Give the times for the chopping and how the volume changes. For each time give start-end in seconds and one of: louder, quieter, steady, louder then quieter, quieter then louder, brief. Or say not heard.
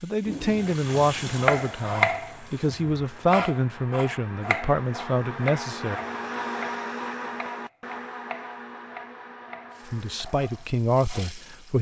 0.2-11.3 quieter.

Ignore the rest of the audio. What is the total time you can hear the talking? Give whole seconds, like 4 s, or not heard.
8 s.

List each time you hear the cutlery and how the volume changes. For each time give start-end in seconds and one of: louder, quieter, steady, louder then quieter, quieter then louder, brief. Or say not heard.
not heard.